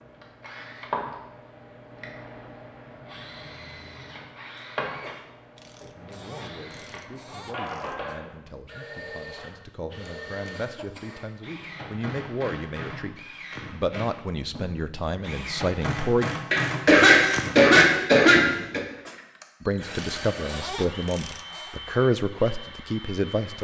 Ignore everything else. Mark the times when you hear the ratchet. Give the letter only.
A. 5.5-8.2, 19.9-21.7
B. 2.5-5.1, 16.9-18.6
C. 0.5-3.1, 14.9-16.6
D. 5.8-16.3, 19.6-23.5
A.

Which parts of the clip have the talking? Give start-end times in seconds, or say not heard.
5.8-16.3, 19.6-23.5.